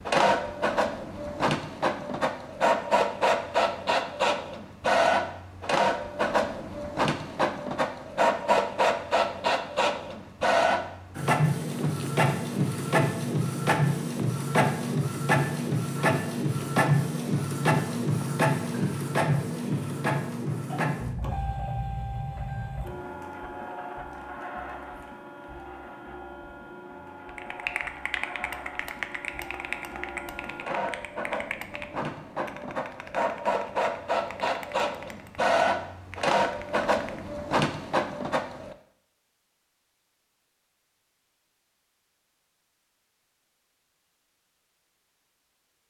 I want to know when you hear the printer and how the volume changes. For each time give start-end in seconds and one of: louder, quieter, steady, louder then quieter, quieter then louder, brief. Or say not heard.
0.0-38.8 quieter then louder.